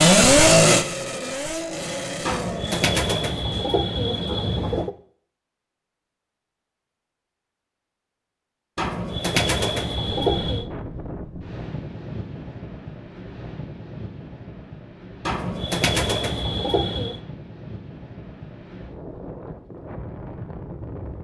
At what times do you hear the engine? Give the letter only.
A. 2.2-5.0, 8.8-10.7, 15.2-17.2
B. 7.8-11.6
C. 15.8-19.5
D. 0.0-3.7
D.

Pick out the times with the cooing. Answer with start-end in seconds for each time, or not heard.
2.2-5.0, 8.8-10.7, 15.2-17.2.